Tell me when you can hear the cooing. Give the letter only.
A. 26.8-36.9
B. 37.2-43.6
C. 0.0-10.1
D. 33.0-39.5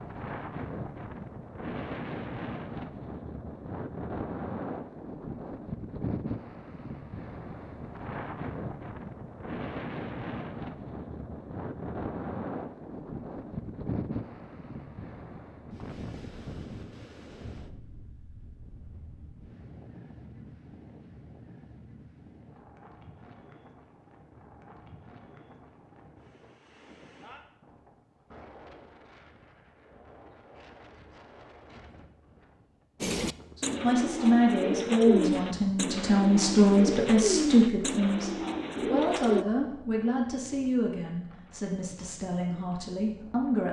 D.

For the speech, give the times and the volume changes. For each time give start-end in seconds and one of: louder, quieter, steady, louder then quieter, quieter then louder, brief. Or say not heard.
33.5-43.6 quieter.